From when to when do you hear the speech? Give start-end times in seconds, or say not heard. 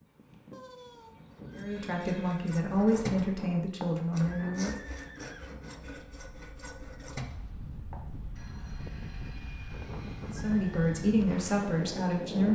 1.6-4.8, 10.3-12.5.